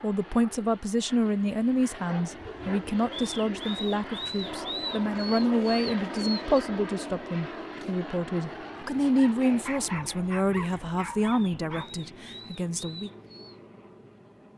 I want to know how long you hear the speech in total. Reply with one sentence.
The speech can be heard for 13 seconds in total.